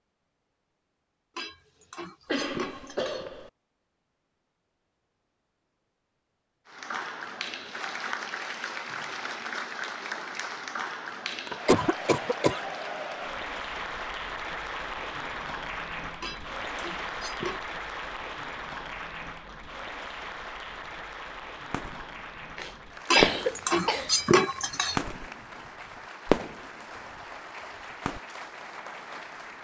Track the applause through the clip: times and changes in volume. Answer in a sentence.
You can hear the applause from 6.7 to 29.5 s, getting quieter.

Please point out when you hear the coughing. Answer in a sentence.
The coughing can be heard from 2.2 to 3.5 s, from 11.4 to 12.6 s and from 22.6 to 24.1 s.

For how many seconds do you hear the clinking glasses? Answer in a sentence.
You can hear the clinking glasses for 5 seconds altogether.